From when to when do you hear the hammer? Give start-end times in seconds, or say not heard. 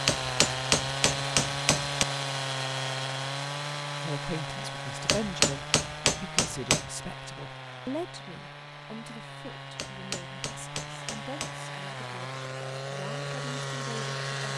0.1-2.0, 5.0-6.9, 9.8-11.6.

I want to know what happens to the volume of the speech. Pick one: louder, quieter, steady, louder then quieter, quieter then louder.
quieter.